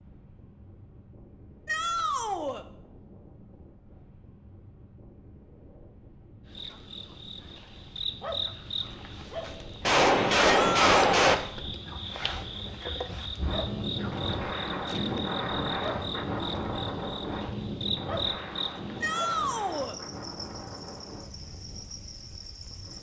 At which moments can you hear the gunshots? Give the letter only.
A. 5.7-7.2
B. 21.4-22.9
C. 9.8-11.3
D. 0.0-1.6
C.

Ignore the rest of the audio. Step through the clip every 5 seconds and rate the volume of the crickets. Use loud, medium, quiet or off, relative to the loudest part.
off, loud, loud, loud, medium.